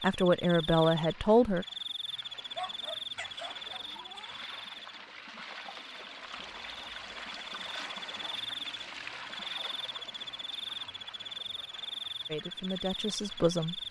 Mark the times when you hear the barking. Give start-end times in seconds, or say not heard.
2.5-4.5.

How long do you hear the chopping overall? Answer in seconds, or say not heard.
not heard.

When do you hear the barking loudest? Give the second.
3 s.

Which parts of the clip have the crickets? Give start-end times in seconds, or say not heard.
0.0-13.8.